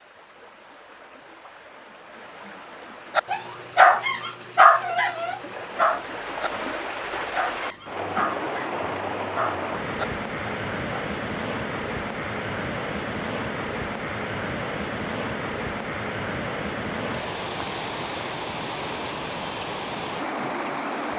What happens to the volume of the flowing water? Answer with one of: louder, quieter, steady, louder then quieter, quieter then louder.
louder.